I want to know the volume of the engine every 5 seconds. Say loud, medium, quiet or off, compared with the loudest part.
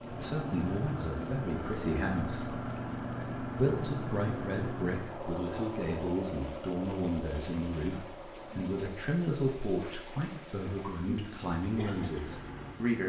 loud, medium, medium.